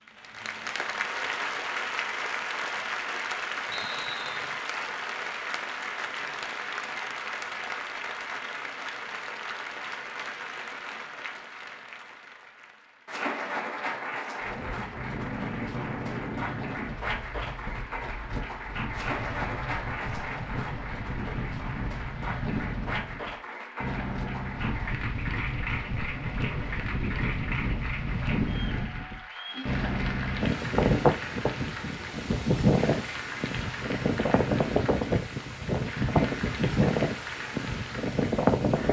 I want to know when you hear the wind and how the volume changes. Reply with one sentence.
You can hear the wind from 14.4 to 38.8 s, getting louder.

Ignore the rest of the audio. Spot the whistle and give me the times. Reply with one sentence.
The whistle can be heard from 3.7 to 4.5 s.